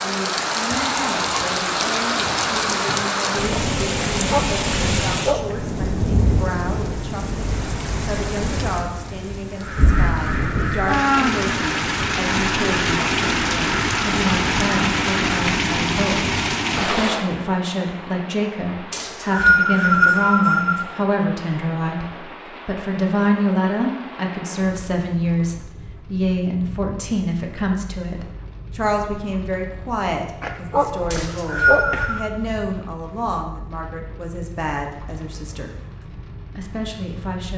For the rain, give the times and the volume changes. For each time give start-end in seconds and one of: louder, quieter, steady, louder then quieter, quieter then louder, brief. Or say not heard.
0.0-37.5 quieter.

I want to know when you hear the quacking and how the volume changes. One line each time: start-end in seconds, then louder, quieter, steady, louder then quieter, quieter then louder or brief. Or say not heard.
9.6-15.4 steady.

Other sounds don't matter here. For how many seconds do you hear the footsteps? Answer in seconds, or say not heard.
not heard.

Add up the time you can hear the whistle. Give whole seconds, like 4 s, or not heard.
4 s.